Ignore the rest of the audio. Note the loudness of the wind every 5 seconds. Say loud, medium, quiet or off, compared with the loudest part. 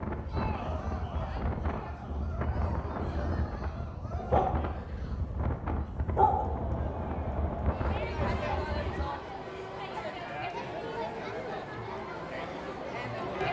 loud, loud, off.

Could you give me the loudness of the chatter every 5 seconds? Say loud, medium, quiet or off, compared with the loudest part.
medium, loud, loud.